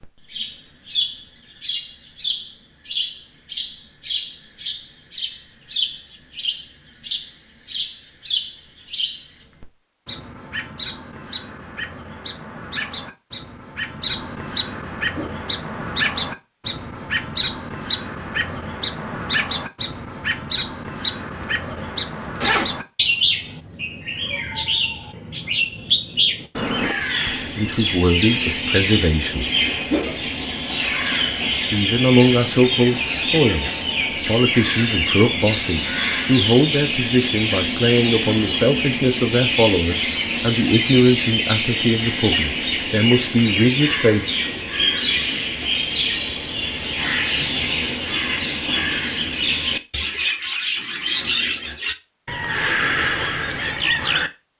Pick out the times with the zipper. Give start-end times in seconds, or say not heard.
21.4-22.7.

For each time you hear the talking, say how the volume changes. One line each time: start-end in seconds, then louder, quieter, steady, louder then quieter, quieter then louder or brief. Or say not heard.
27.2-29.4 brief
31.7-44.2 steady.